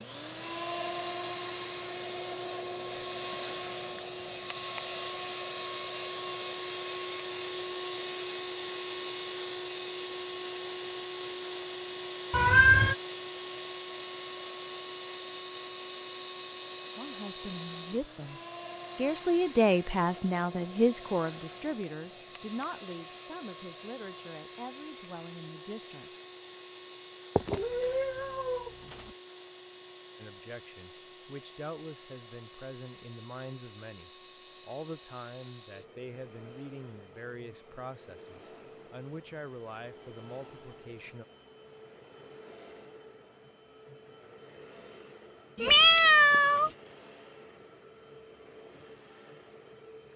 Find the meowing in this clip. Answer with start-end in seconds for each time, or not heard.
12.3-12.9, 27.4-29.1, 45.5-46.7.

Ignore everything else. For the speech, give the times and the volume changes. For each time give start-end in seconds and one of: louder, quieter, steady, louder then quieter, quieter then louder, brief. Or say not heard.
16.9-26.1 louder then quieter
30.2-41.2 steady.